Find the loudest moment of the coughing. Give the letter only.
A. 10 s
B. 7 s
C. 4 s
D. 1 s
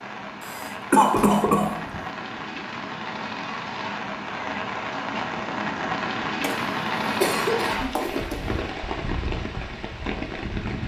D.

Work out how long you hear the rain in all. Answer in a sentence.
You can hear the rain for 11 seconds altogether.